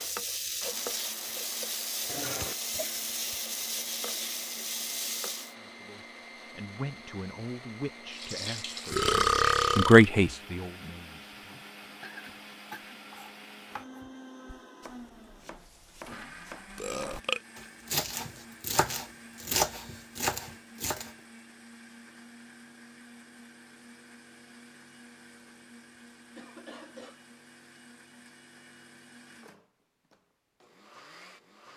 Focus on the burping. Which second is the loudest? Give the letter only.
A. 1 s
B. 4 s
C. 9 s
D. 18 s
C.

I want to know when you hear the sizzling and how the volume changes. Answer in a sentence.
The sizzling can be heard from 0.0 to 5.5 s, at a steady volume; and briefly from 8.1 to 9.9 s.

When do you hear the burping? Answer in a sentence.
You can hear the burping from 8.9 to 10.1 s and from 16.8 to 17.4 s.